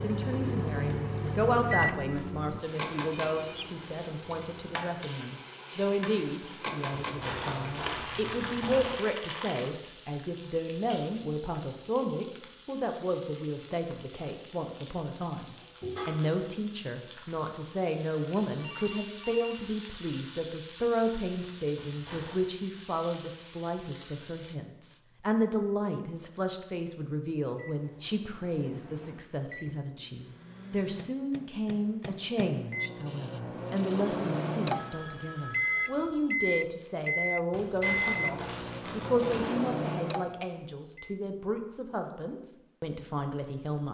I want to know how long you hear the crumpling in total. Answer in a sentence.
The crumpling can be heard for 5 seconds in total.